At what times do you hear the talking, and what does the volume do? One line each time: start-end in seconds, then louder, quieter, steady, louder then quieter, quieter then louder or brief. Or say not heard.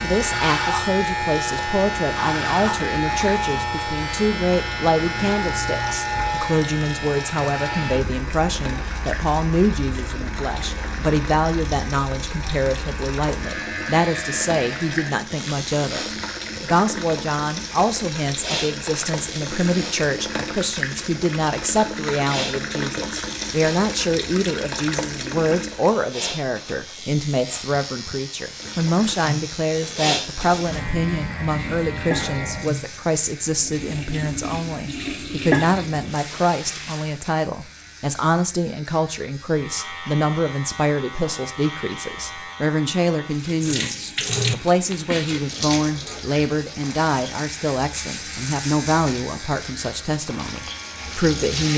0.0-51.7 steady.